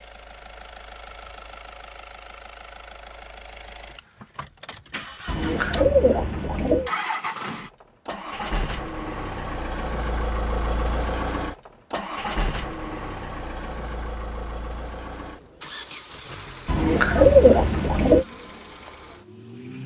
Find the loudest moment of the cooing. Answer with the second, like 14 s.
17 s.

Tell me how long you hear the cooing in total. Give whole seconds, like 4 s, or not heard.
3 s.